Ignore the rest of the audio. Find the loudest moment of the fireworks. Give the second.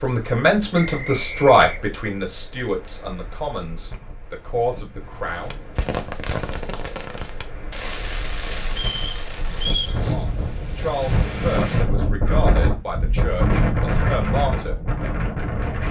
6 s.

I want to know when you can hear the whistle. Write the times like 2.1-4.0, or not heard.
0.7-2.0, 8.7-10.0.